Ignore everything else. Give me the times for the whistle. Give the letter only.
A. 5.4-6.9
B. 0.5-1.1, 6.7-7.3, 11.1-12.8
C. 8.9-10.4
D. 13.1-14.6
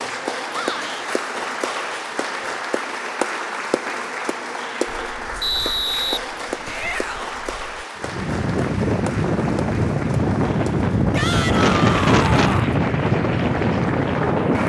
A.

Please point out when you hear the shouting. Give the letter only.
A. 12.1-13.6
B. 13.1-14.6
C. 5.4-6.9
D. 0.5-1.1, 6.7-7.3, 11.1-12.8
D.